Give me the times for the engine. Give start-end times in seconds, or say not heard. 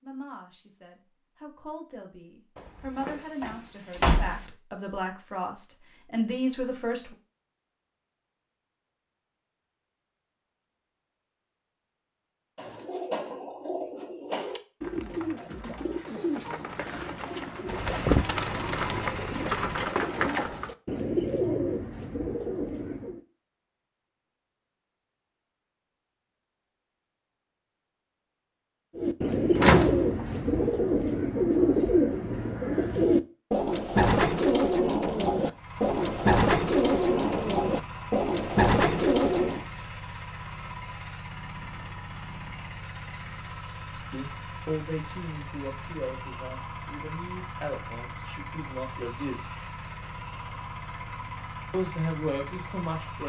17.6-19.9, 35.5-53.2.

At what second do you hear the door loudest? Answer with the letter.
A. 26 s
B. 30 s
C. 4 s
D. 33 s
B.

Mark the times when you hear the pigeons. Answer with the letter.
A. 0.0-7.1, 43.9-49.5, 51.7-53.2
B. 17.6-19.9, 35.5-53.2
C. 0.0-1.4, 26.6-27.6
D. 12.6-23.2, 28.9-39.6
D.